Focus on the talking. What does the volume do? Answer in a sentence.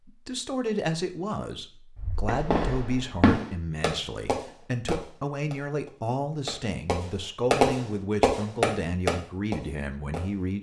The loudness of the talking stays about the same.